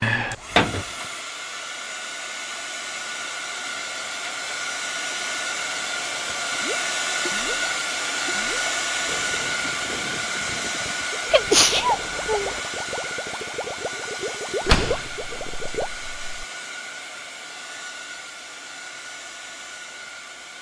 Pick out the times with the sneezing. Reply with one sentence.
The sneezing can be heard from 11.3 to 12.6 s.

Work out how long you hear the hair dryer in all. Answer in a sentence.
The hair dryer can be heard for 20 seconds in total.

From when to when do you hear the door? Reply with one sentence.
The door can be heard from 0.0 to 0.8 s and from 14.7 to 16.4 s.